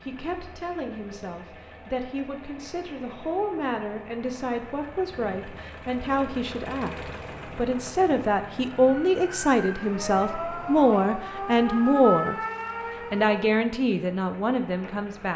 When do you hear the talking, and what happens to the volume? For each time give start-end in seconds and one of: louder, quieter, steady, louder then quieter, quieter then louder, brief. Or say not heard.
0.0-12.4 louder
13.1-15.3 brief.